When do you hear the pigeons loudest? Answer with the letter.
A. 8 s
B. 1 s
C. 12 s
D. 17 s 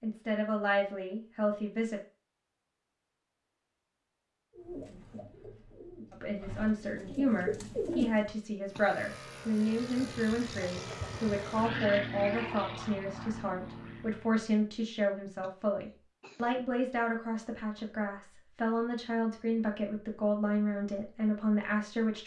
A.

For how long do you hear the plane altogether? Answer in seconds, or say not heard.
6 s.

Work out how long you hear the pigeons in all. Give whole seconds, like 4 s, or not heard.
4 s.